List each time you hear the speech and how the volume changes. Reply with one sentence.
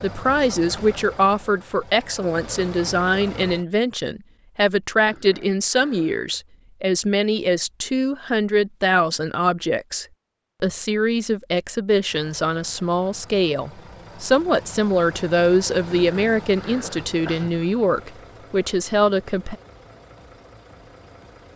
The speech can be heard from 0.0 to 19.6 s, at a steady volume.